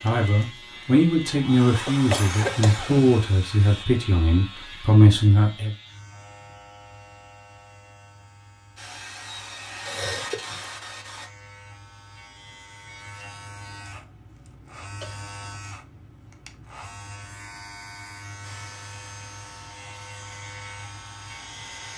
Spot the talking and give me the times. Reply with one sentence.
The talking can be heard from 0.0 to 5.7 s.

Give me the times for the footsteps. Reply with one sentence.
The footsteps can't be heard in this clip.